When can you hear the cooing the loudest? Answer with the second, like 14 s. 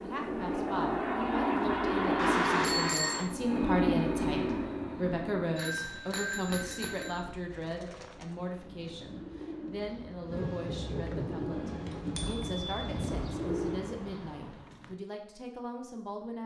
14 s.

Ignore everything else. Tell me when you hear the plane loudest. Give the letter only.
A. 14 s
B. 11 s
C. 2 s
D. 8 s
C.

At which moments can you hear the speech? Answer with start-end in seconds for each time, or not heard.
0.0-16.4.